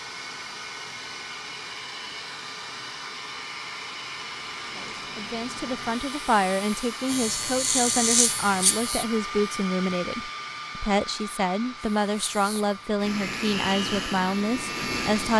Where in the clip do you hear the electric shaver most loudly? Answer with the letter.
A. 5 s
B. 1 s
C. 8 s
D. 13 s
C.